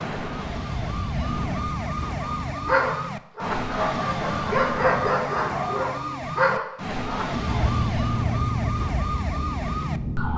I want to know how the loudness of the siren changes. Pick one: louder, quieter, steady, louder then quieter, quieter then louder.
steady.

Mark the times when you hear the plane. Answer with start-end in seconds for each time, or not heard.
0.0-2.8, 7.3-10.3.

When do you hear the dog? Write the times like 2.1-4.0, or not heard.
2.2-8.8.